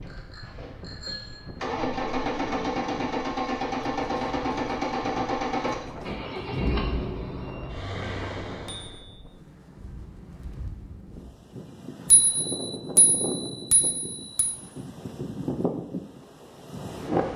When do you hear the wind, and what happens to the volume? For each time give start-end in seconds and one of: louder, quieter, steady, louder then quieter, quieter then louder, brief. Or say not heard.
0.0-17.3 louder.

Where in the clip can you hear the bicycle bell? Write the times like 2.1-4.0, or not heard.
0.1-1.4, 8.7-9.1, 12.1-14.6.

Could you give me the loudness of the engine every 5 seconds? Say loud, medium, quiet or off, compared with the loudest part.
loud, loud, off, off.